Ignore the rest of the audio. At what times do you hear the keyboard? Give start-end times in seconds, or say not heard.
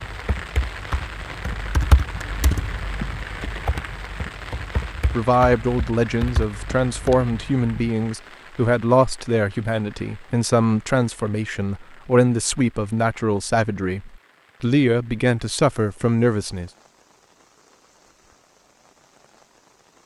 0.0-7.9.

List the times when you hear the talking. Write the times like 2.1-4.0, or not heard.
5.1-16.7.